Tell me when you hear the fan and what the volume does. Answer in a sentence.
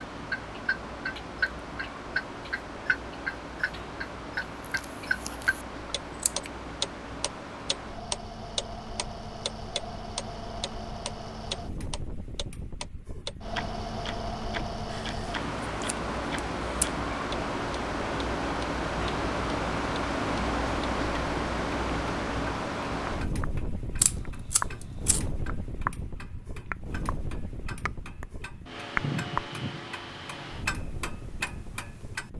You can hear the fan from 0.0 to 32.3 s, getting louder then quieter.